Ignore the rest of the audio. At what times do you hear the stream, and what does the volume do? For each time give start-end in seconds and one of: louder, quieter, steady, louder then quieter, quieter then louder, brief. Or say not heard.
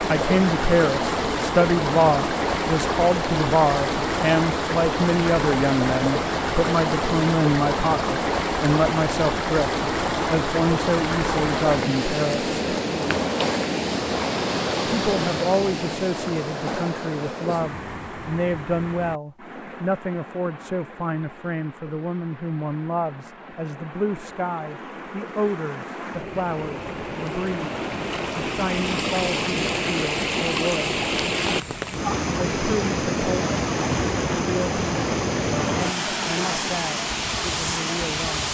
0.0-38.4 quieter then louder.